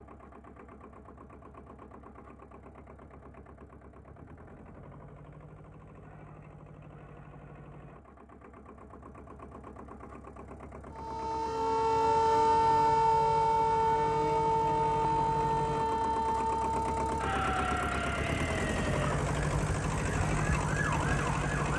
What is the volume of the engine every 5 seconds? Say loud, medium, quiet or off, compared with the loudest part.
quiet, quiet, medium, loud, loud.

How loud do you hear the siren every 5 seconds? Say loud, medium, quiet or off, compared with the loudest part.
off, off, loud, medium, medium.